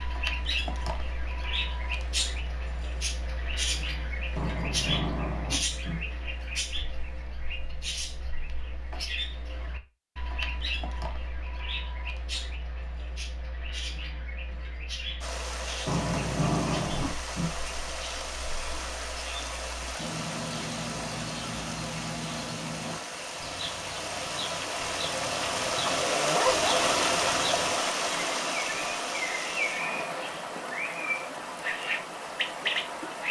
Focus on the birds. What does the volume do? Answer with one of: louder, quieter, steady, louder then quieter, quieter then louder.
quieter then louder.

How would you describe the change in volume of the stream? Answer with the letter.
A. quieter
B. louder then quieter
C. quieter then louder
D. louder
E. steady
B.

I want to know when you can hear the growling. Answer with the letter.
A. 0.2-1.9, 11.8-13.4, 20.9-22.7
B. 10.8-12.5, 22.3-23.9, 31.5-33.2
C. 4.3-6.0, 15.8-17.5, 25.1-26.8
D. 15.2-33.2
C.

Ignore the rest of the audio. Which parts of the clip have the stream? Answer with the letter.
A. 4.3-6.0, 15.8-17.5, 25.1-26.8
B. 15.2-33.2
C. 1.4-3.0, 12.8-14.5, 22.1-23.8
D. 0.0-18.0
B.